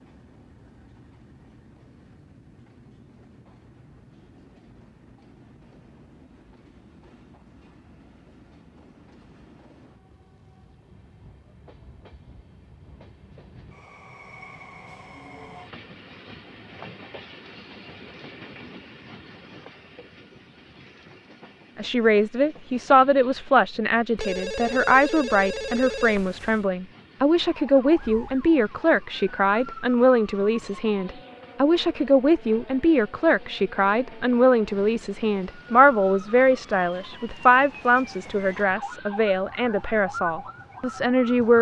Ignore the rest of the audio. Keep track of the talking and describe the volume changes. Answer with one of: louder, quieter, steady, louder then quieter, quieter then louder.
steady.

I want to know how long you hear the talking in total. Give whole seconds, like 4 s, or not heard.
20 s.